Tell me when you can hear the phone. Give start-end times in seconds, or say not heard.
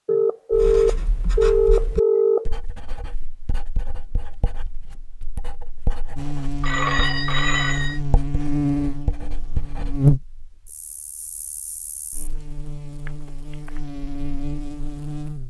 0.1-2.5, 6.6-8.0, 13.1-13.8.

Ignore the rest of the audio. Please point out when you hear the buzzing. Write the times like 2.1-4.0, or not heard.
6.2-15.4.